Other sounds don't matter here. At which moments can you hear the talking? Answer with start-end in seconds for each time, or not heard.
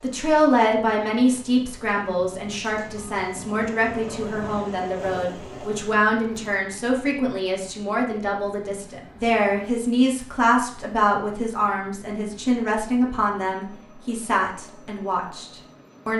0.0-15.4.